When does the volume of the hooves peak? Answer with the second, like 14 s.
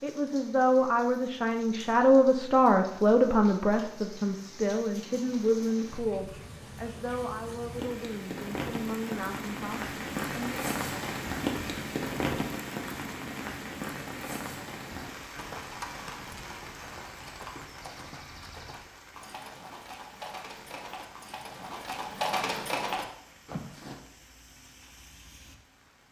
22 s.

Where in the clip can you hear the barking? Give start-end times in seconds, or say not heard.
not heard.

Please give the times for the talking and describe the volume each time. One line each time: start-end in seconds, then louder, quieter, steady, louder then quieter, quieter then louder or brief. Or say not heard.
0.0-10.6 quieter.